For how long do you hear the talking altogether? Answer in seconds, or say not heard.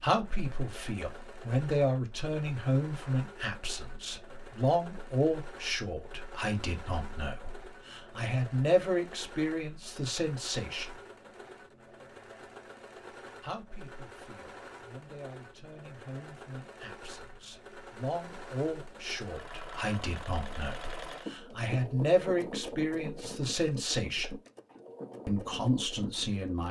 23 s.